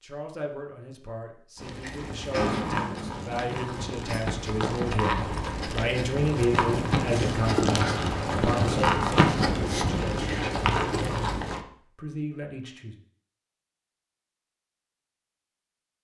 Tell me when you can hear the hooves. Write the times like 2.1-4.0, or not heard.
1.6-11.7.